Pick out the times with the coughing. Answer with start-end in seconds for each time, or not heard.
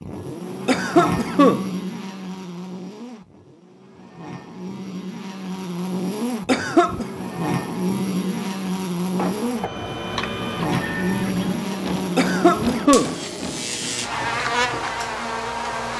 0.7-1.6, 6.5-7.0, 12.2-13.2.